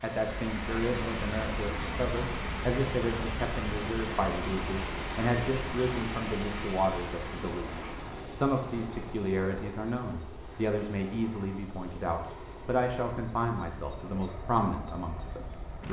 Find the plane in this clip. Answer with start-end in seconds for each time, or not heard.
0.1-15.8.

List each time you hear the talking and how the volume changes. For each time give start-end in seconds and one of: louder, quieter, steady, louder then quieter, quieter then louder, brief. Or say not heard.
0.0-15.8 steady.